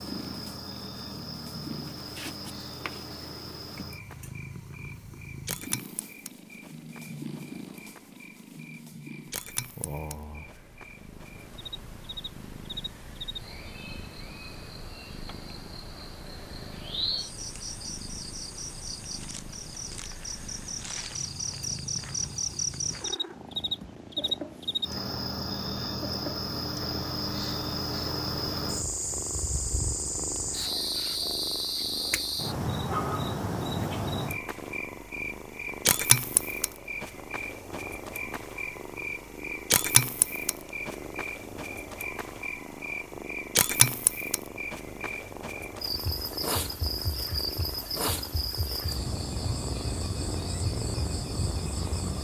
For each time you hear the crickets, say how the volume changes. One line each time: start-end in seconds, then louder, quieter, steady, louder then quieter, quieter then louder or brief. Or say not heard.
0.0-52.2 louder.